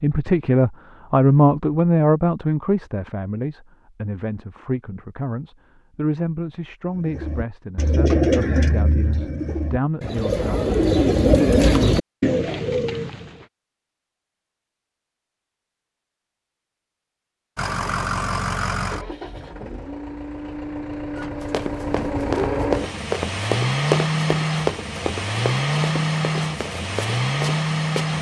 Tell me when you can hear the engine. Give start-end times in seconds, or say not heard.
17.6-28.1.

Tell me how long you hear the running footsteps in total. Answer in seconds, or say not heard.
7 s.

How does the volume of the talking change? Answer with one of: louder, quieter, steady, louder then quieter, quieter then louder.
quieter.